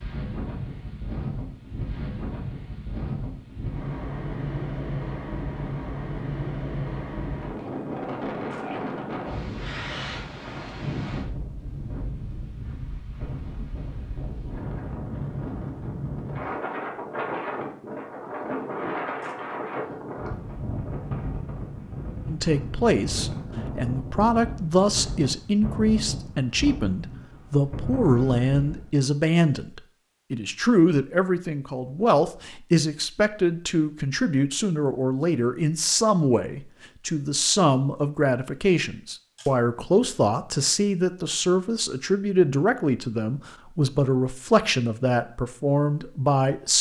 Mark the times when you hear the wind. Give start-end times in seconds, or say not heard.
0.0-28.9.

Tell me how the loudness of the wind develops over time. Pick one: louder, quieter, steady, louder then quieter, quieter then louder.
steady.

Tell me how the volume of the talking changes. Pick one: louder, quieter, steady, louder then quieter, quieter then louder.
steady.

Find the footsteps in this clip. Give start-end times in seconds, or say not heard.
not heard.